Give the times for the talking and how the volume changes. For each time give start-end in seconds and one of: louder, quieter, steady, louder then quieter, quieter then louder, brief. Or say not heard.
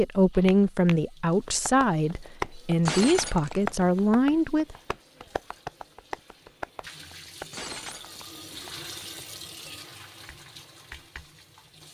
0.0-4.8 quieter then louder.